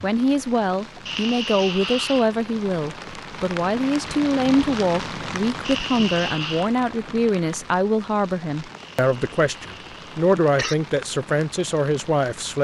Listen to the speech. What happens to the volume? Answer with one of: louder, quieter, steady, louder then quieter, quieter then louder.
steady.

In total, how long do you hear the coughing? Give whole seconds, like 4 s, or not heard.
4 s.